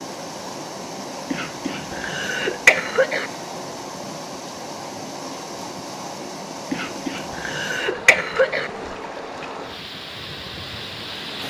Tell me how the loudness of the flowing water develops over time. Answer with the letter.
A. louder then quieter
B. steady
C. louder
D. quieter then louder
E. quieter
B.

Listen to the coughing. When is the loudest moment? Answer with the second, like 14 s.
3 s.